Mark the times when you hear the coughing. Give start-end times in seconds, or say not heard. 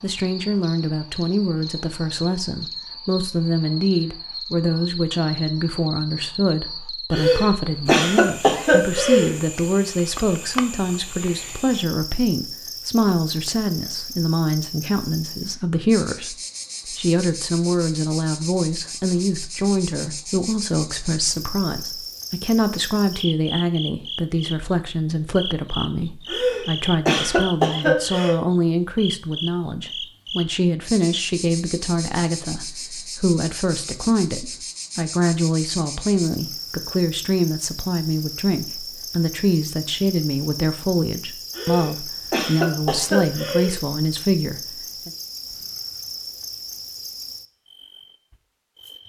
7.1-9.3, 26.2-28.4, 41.5-43.8.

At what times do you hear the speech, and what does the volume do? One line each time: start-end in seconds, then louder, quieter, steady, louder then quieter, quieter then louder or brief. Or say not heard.
0.0-45.1 steady.